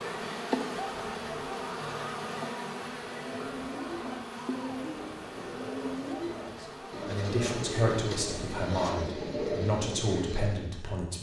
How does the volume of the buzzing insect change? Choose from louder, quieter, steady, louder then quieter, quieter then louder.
quieter.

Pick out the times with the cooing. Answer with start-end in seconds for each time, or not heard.
3.1-10.8.